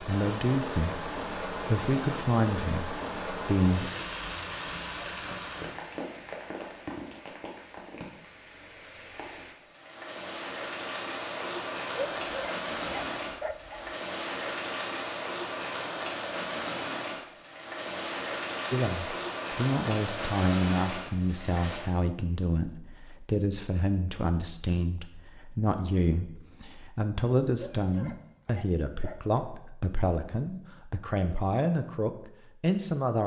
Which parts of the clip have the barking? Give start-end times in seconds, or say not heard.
11.9-13.9, 27.6-29.4.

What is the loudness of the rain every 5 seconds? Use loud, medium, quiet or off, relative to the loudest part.
loud, medium, loud, loud, loud, off, off.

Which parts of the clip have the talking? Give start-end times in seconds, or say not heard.
0.0-3.9, 18.7-33.2.